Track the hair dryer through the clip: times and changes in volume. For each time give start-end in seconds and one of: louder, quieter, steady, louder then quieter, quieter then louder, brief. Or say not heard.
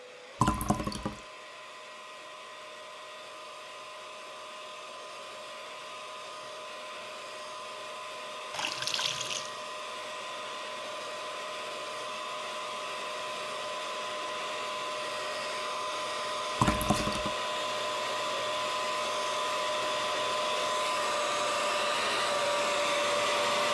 0.0-23.6 louder.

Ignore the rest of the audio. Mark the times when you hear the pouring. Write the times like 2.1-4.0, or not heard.
0.4-1.2, 8.5-9.5, 16.6-17.4.